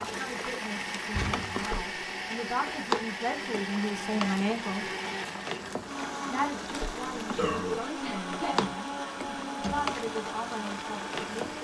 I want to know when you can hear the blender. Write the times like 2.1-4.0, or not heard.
0.0-11.5.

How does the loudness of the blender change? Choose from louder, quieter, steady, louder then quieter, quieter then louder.
steady.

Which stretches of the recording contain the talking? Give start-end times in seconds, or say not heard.
0.0-4.9, 6.3-11.5.